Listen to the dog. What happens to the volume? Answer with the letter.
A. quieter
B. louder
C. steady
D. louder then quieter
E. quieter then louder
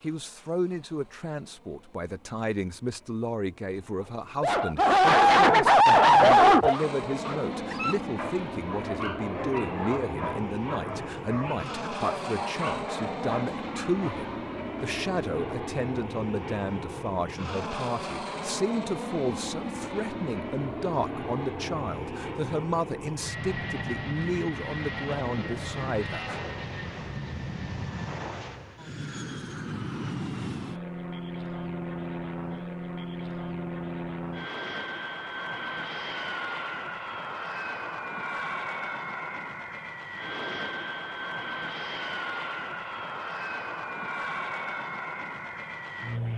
A.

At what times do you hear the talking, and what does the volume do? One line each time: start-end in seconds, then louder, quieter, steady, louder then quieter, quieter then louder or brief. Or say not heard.
0.0-26.4 steady.